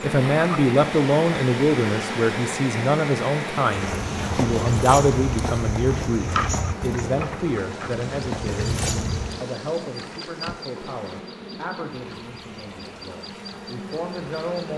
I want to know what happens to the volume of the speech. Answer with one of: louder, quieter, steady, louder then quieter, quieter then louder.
quieter.